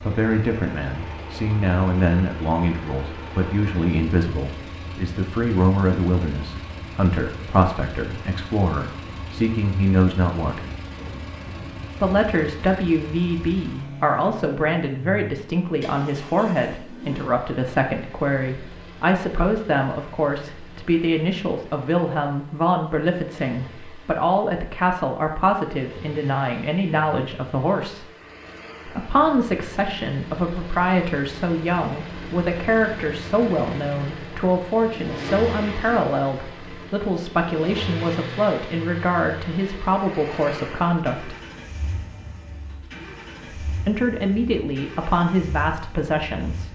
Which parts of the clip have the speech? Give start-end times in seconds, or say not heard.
0.0-10.7, 12.0-28.1, 28.9-41.4, 43.6-46.6.